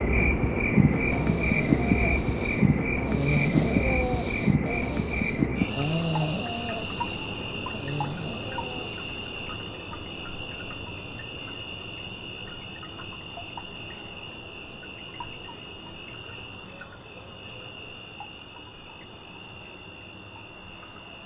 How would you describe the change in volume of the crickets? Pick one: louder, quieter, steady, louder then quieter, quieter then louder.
quieter.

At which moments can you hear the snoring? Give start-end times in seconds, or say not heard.
0.6-9.3.